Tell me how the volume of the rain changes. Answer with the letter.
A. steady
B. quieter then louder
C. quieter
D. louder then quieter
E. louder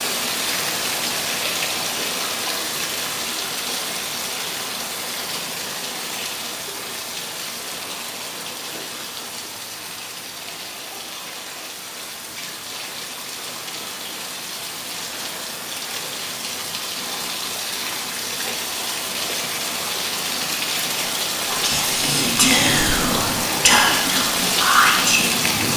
B.